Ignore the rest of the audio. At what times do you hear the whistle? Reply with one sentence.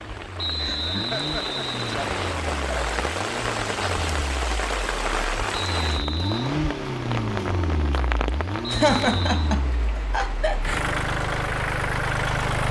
You can hear the whistle from 0.3 to 2.4 s, from 5.5 to 6.5 s and from 8.8 to 9.6 s.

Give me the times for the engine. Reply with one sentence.
You can hear the engine from 0.0 to 12.6 s.